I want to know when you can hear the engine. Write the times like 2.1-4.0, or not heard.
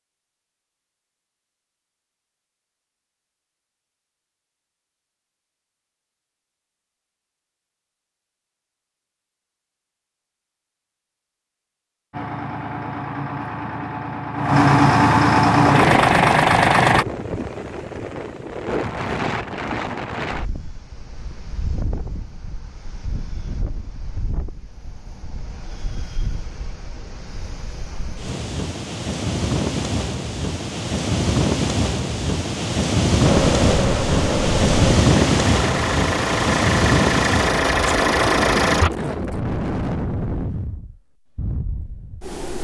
12.1-17.1, 33.2-38.9.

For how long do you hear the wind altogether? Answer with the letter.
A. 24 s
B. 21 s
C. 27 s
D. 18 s
C.